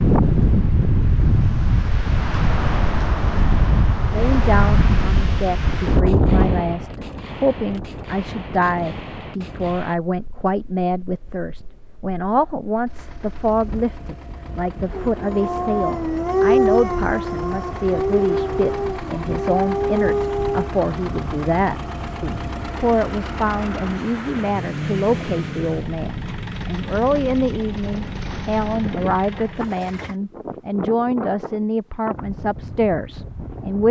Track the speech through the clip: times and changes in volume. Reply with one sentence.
The speech can be heard from 4.1 to 33.8 s, at a steady volume.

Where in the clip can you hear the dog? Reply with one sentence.
You can hear the dog from 14.9 to 20.7 s.